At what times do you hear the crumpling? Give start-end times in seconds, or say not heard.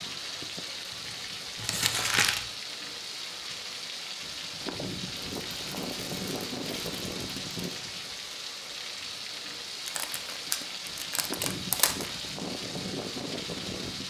1.6-2.5, 5.2-7.8, 9.8-12.2.